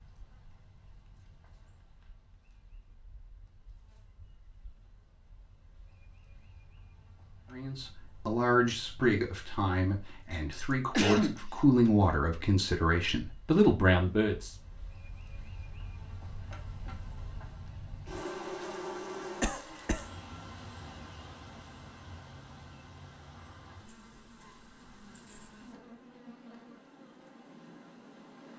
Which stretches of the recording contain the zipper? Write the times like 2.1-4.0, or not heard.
not heard.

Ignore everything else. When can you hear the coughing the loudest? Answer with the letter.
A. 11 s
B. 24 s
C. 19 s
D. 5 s
A.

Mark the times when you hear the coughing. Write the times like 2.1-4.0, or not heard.
10.5-11.9, 19.4-20.1.